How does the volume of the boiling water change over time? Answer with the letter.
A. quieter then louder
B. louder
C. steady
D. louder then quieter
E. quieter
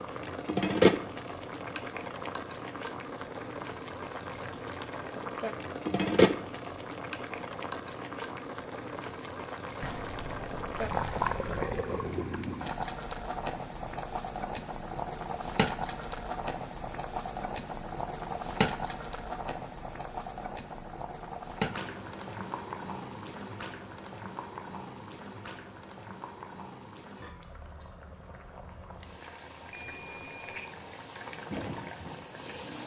E.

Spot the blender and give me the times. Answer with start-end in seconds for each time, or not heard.
not heard.